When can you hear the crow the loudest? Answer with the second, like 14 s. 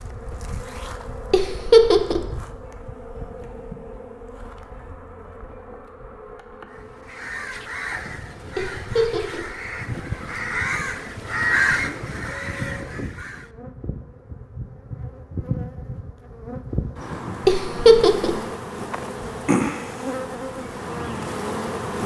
12 s.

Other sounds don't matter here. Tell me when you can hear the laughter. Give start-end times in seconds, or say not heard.
1.3-2.2, 8.6-9.5, 17.4-18.4.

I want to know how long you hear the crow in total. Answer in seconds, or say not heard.
7 s.